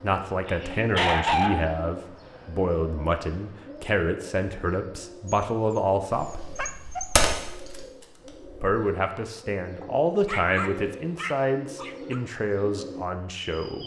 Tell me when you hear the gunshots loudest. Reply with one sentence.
The volume of the gunshots peaks at 7 seconds.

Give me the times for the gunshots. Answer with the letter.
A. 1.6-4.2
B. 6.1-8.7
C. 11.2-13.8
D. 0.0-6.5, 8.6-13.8
B.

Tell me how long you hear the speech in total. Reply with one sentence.
You can hear the speech for 12 seconds altogether.